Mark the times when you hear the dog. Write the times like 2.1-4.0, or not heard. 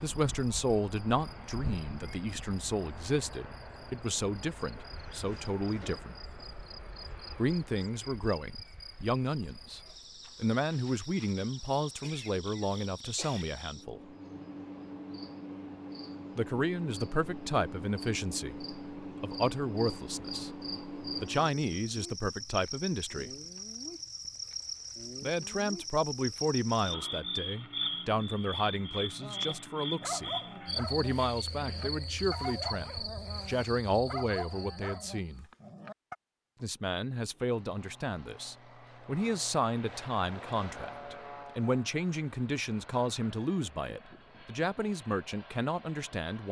29.2-36.1.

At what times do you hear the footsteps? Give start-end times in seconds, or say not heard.
not heard.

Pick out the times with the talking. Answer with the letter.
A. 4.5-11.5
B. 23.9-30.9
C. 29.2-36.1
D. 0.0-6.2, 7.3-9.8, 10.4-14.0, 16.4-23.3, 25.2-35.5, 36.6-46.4
D.